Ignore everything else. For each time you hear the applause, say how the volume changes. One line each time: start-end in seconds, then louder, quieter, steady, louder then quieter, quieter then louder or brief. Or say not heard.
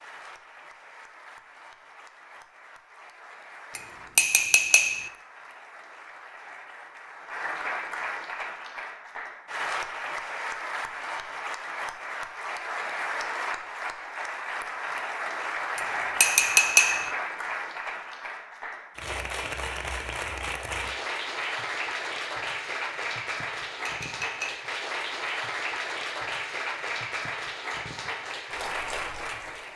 0.0-29.7 louder.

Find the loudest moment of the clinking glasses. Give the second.
17 s.